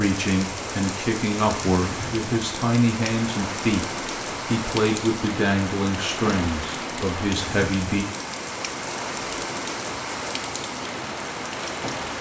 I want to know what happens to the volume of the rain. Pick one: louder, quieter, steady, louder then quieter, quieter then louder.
steady.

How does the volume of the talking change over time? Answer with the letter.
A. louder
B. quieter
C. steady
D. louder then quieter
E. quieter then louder
C.